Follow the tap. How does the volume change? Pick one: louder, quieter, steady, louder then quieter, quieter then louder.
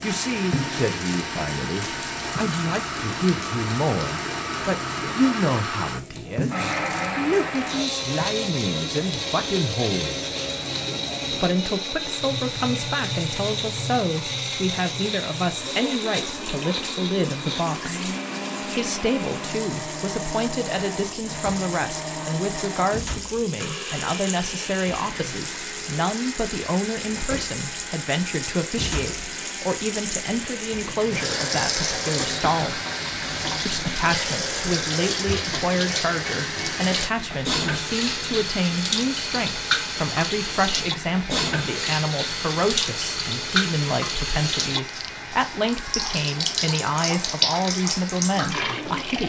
louder.